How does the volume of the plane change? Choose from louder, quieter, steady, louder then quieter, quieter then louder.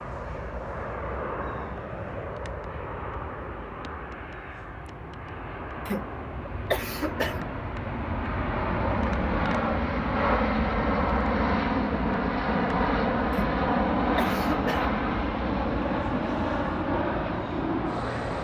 louder.